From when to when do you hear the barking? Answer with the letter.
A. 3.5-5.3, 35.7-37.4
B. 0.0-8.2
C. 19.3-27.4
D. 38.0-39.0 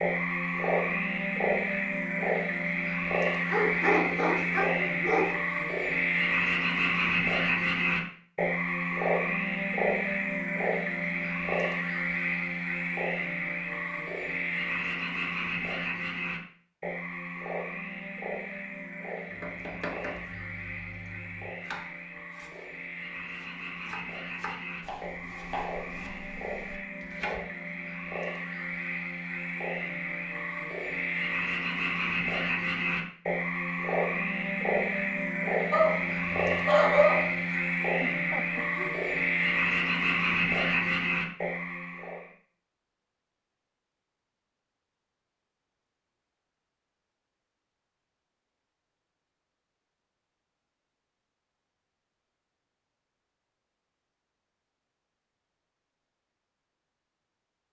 A.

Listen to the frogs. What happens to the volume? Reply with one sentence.
The volume of the frogs goes down, then up.